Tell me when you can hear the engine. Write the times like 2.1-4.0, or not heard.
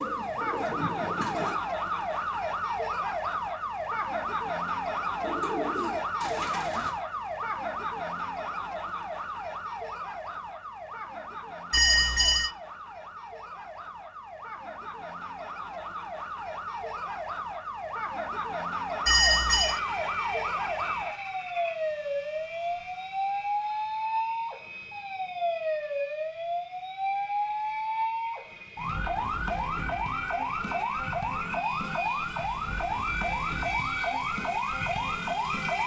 19.6-35.8.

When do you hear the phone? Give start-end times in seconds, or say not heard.
11.7-12.6, 19.1-19.8.